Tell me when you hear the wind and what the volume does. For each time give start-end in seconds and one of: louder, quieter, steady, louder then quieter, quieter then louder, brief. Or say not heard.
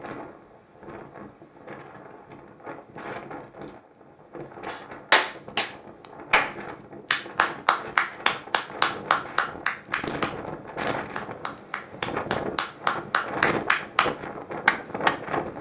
0.0-15.5 louder.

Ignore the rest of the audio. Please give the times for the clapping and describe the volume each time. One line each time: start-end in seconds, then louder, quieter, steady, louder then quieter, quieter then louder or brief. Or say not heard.
4.7-5.7 brief
6.3-15.2 quieter then louder.